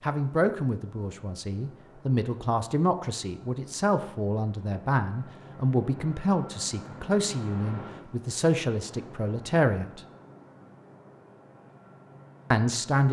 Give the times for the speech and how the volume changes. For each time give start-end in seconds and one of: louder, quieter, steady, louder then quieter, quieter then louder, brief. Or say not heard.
0.0-10.0 steady
12.5-13.0 brief.